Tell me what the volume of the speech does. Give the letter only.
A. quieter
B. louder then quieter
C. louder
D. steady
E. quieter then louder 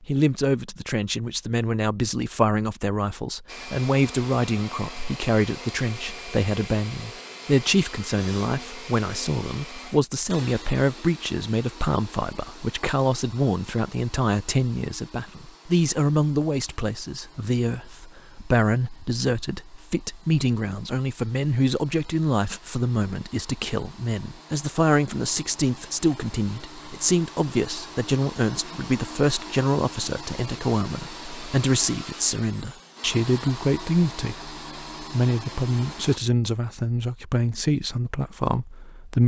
D.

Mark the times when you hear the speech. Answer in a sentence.
The speech can be heard from 0.0 to 39.2 s.